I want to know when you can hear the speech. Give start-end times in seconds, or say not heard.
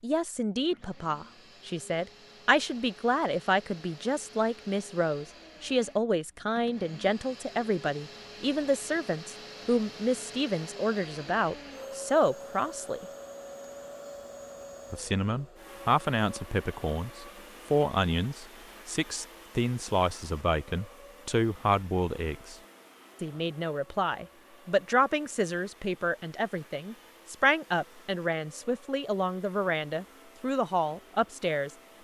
0.0-13.1, 14.9-22.6, 23.2-31.7.